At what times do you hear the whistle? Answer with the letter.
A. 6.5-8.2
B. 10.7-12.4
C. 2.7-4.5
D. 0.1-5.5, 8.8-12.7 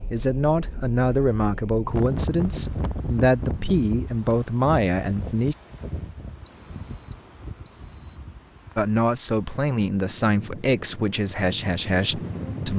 A.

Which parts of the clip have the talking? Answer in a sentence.
You can hear the talking from 0.1 to 5.5 s and from 8.8 to 12.7 s.